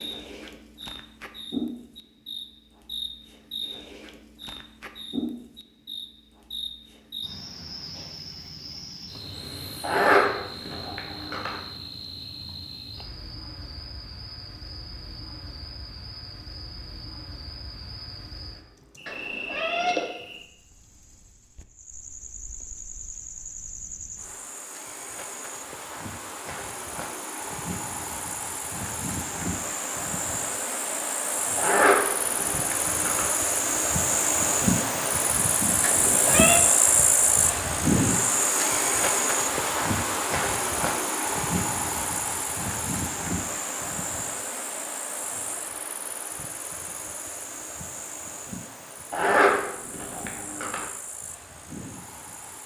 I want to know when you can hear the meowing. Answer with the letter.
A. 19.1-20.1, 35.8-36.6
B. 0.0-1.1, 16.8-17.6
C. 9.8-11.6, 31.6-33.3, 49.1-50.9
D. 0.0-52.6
A.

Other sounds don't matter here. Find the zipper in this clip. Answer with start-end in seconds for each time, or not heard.
9.8-11.6, 31.6-33.3, 49.1-50.9.